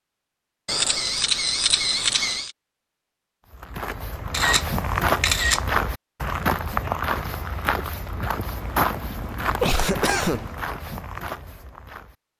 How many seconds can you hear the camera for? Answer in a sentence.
The camera can be heard for 5 seconds in total.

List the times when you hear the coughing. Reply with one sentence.
You can hear the coughing from 9.6 to 10.5 s.